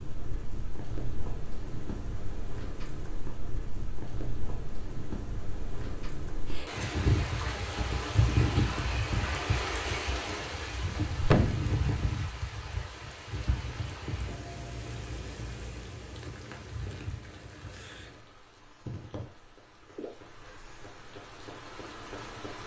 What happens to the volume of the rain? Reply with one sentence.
The loudness of the rain goes up, then down.